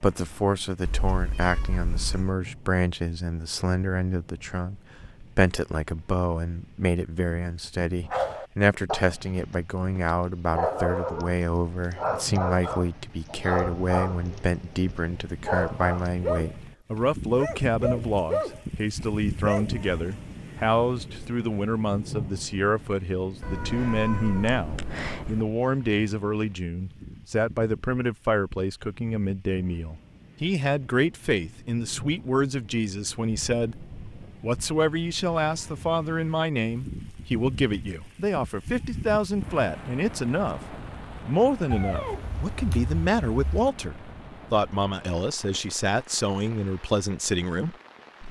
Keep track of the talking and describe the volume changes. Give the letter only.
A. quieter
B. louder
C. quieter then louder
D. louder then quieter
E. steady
E.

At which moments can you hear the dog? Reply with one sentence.
The dog can be heard from 8.1 to 19.7 s.